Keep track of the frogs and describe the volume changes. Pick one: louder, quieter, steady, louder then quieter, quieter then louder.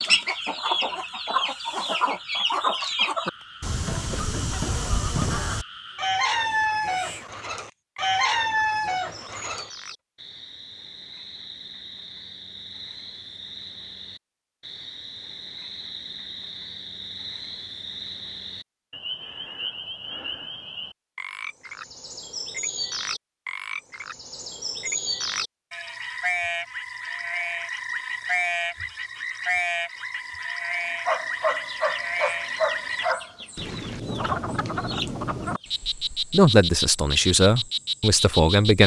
louder.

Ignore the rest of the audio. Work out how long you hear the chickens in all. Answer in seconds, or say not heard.
14 s.